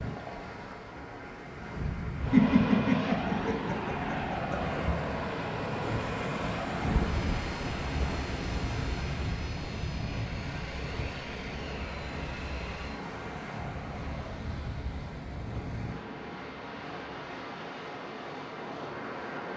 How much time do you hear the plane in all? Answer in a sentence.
You can hear the plane for 12 seconds altogether.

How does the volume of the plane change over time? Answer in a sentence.
The loudness of the plane goes down.